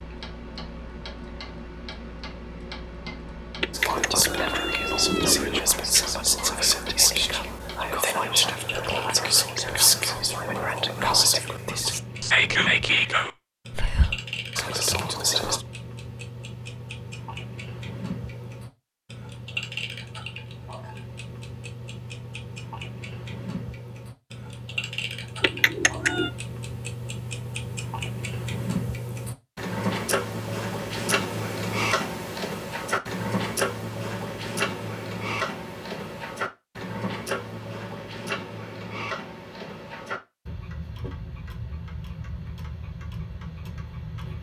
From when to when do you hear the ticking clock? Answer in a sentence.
The ticking clock can be heard from 0.0 to 44.3 s.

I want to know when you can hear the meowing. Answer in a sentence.
You can hear the meowing from 3.6 to 5.6 s and from 25.4 to 26.3 s.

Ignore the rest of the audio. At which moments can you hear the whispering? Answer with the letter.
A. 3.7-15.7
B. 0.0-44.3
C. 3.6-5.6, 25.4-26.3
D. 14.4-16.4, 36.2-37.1
A.